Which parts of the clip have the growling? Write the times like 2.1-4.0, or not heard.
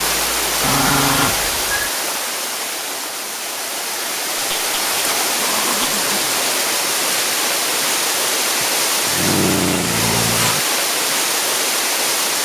0.6-1.9, 4.3-6.5, 8.6-10.6.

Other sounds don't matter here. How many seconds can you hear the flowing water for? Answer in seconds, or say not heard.
12 s.